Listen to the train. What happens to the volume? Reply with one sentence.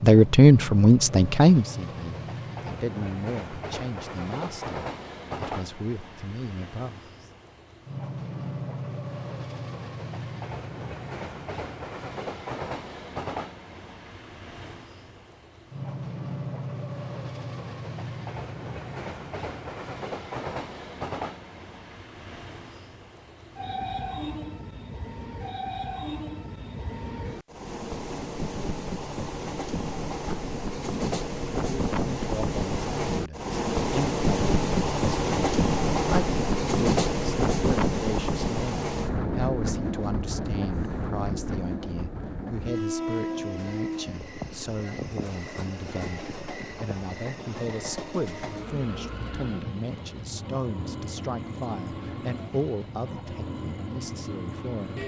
The volume of the train goes up, then down.